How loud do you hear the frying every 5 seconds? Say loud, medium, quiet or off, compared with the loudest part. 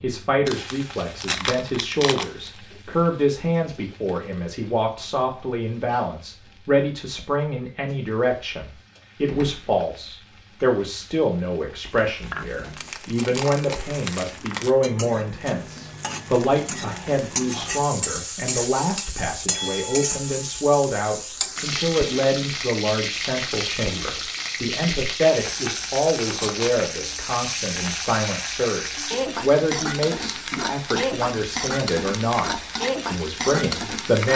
quiet, quiet, quiet, loud, loud, loud, loud.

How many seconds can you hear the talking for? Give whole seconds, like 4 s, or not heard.
34 s.